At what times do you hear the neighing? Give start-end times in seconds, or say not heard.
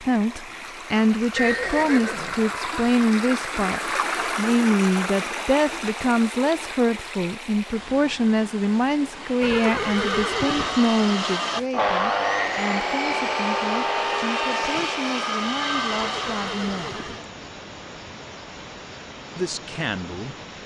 1.4-2.9, 9.4-10.8, 15.9-17.3.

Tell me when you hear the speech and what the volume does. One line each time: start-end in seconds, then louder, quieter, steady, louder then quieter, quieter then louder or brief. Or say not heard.
0.0-17.1 quieter
19.4-20.4 brief.